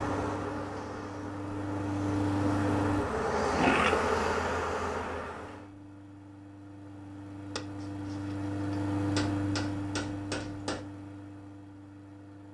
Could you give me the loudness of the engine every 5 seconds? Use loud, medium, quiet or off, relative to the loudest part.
loud, loud, medium.